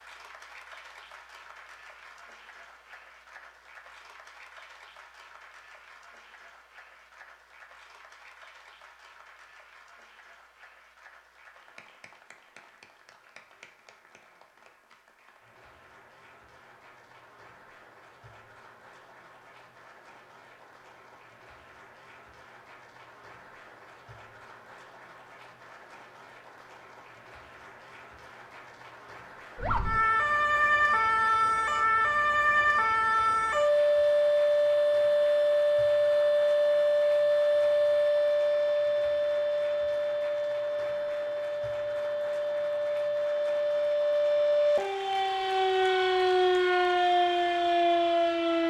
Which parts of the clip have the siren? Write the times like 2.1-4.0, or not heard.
29.6-48.6.